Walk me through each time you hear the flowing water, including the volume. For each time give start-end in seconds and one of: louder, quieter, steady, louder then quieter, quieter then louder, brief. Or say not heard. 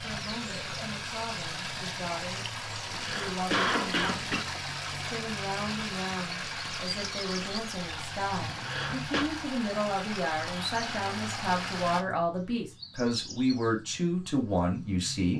0.0-12.1 steady.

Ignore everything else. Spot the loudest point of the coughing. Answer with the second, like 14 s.
4 s.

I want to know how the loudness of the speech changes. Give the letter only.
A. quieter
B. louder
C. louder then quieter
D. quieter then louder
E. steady
B.